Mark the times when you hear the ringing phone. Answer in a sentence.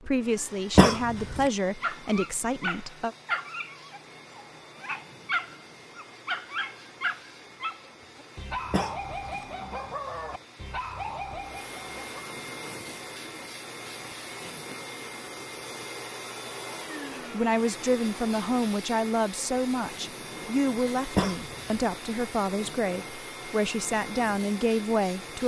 The ringing phone can't be heard in this clip.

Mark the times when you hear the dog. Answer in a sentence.
The dog can be heard from 1.8 to 12.4 s.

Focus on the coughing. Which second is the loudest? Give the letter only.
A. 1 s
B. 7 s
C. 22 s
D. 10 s
A.